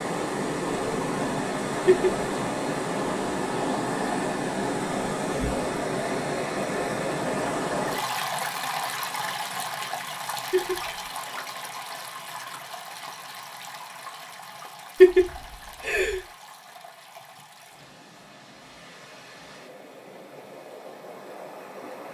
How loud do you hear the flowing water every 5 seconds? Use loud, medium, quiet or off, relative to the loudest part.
loud, loud, medium, quiet, quiet.